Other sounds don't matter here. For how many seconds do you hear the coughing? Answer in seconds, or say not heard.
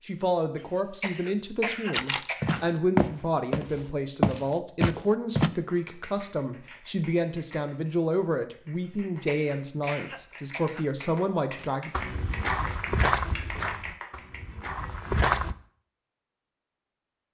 4 s.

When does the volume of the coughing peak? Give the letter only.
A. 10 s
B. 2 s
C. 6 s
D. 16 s
B.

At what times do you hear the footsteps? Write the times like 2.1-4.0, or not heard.
2.4-5.5, 11.9-15.6.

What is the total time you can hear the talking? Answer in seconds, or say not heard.
12 s.